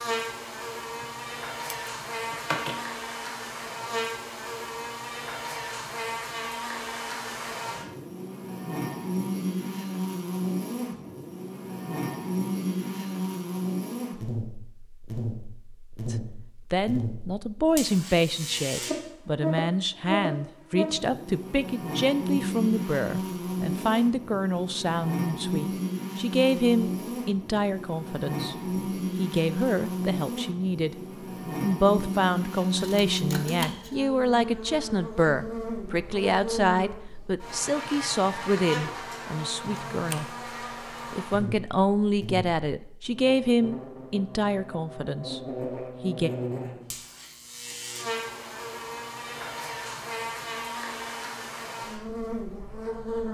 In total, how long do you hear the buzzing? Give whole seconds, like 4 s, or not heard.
53 s.